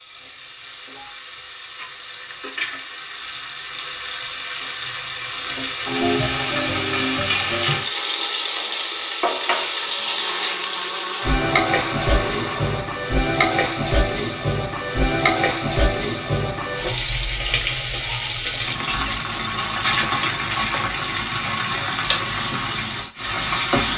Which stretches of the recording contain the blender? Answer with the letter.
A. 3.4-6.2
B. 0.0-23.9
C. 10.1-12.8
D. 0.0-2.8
C.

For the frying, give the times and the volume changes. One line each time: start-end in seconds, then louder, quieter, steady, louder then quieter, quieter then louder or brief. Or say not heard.
0.0-23.9 louder.